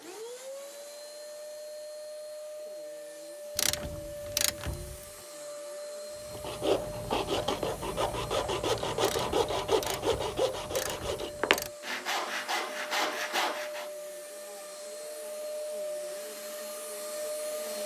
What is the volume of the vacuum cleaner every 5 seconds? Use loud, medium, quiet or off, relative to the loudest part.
medium, medium, medium, loud.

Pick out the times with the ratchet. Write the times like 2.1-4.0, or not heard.
3.5-5.0, 9.0-11.7.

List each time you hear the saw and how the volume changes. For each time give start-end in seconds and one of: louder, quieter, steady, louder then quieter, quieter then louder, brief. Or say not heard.
6.2-13.9 steady.